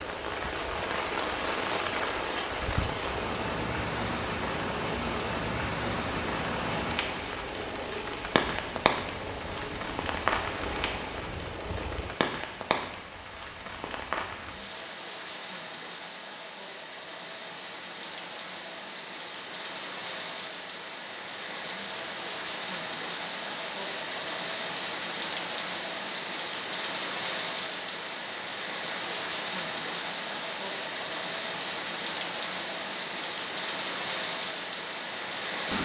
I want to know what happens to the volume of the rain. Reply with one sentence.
The loudness of the rain goes down, then up.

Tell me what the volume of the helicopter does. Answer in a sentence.
The loudness of the helicopter stays about the same.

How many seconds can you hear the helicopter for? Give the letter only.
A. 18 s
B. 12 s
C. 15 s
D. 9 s
B.